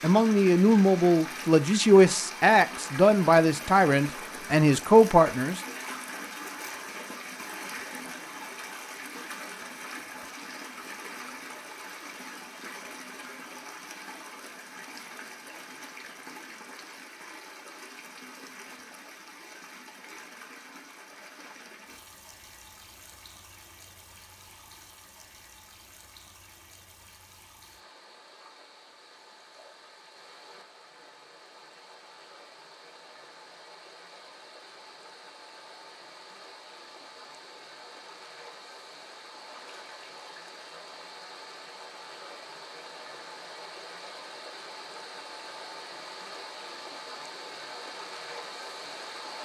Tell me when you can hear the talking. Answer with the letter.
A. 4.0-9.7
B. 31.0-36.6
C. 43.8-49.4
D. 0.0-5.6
D.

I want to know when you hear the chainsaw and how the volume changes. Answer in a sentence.
The chainsaw can't be heard in this clip.